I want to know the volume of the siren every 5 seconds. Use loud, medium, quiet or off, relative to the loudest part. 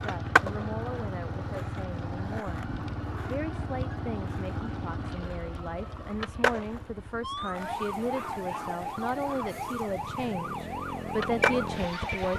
off, loud, loud.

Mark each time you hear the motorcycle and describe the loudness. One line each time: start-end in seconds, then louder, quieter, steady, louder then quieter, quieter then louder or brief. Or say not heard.
0.0-12.3 quieter then louder.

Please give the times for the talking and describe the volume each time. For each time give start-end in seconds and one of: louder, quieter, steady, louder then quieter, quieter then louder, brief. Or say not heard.
0.0-2.6 brief
3.2-12.3 louder.